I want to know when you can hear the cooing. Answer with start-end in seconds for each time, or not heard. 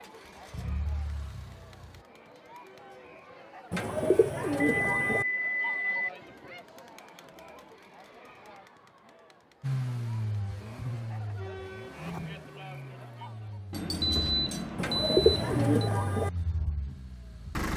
3.7-5.2, 14.8-16.3.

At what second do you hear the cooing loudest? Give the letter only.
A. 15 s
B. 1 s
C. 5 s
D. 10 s
A.